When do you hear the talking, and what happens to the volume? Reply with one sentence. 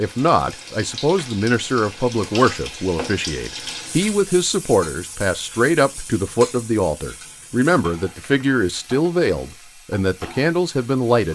The talking can be heard from 0.0 to 11.2 s, at a steady volume.